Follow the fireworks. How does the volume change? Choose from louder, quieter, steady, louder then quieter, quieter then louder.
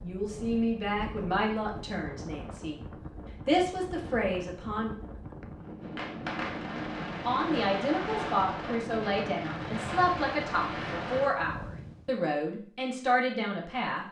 steady.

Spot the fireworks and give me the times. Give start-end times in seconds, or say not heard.
5.8-11.3.